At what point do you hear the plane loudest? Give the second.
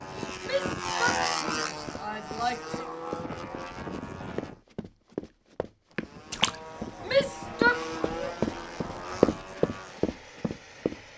1 s.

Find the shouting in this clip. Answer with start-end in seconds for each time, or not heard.
0.4-2.9, 7.0-7.8.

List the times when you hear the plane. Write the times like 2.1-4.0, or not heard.
0.0-4.6, 5.9-11.1.